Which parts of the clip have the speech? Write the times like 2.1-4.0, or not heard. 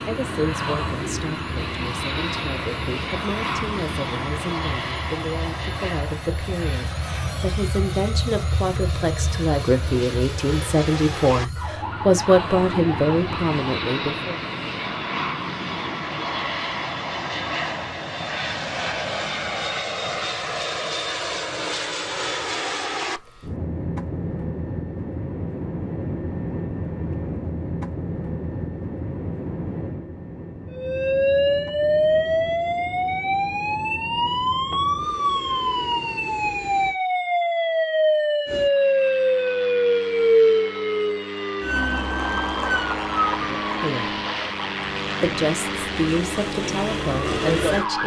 0.1-14.4, 43.4-44.2, 45.2-48.0.